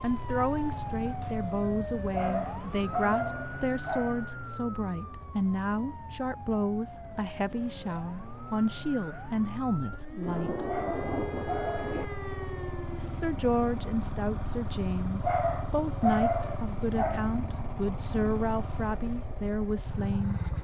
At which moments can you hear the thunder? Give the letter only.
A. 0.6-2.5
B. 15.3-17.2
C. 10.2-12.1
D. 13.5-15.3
C.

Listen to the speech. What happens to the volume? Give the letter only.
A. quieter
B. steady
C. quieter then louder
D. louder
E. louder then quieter
B.